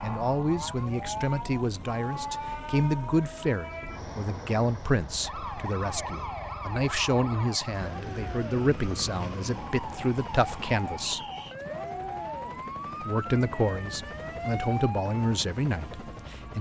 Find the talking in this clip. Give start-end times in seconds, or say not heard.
0.0-11.2, 13.0-16.5.